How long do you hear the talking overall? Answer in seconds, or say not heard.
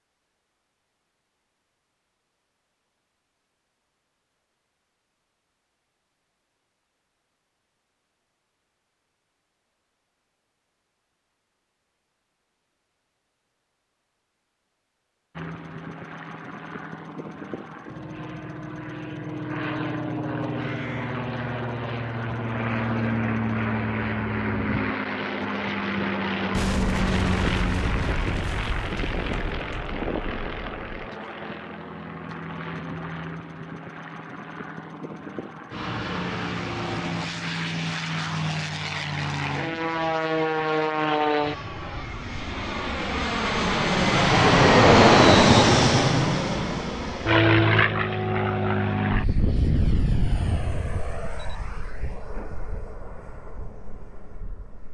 not heard.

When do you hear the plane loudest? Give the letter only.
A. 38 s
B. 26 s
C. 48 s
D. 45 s
D.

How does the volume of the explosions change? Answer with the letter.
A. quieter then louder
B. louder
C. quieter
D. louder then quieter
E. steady
C.